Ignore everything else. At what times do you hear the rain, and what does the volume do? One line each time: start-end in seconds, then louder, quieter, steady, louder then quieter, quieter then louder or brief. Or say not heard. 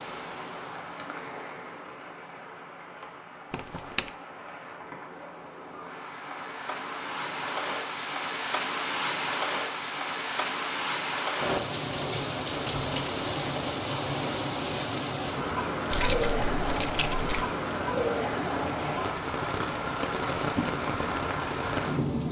0.0-22.2 louder.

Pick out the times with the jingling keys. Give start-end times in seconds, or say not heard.
3.5-4.1, 15.9-17.4.